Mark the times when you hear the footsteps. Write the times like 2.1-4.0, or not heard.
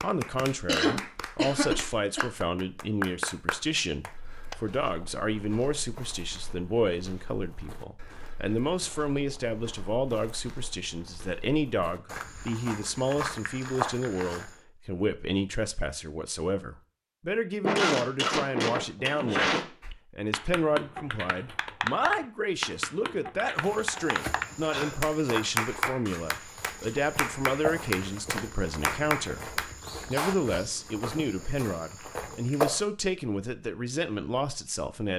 4.0-14.6, 23.6-32.9.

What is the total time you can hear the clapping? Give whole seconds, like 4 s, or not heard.
15 s.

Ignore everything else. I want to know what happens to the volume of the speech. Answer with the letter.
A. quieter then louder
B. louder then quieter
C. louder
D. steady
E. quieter
D.